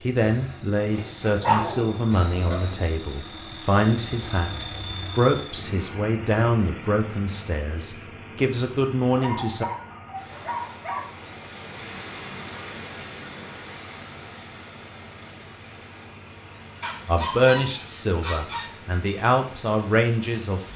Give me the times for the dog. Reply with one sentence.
You can hear the dog from 0.8 to 2.6 s, from 9.2 to 11.1 s and from 16.8 to 18.7 s.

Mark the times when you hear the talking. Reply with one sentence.
The talking can be heard from 0.0 to 9.7 s and from 17.1 to 20.7 s.